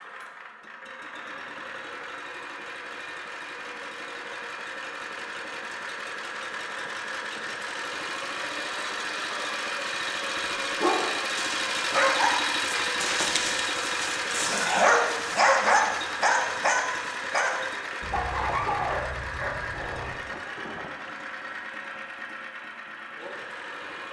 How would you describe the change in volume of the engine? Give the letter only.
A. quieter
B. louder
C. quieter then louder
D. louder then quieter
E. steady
D.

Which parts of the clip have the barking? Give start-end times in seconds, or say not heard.
10.8-20.1.